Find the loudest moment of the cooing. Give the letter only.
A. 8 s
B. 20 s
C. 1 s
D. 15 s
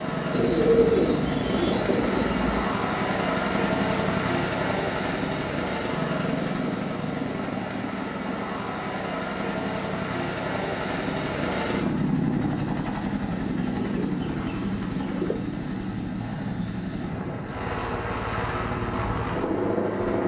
C.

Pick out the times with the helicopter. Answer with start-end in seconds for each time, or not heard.
0.0-20.2.